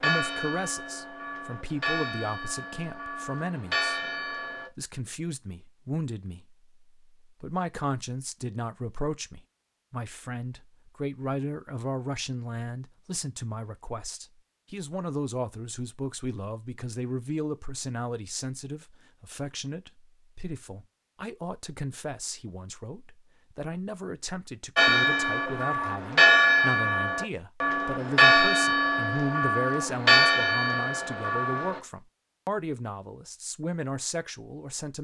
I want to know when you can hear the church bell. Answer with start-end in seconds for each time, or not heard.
0.0-4.7, 24.8-31.8.